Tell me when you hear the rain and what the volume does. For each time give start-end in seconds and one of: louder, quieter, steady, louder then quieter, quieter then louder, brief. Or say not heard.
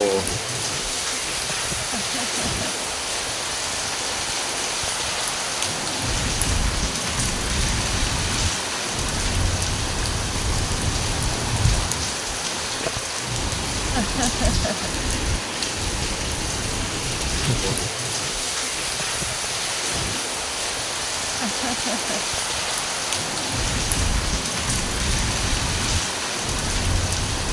0.0-27.4 steady.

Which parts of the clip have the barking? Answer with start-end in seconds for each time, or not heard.
not heard.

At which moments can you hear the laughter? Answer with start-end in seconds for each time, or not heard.
1.9-2.9, 13.9-14.9, 21.4-22.2.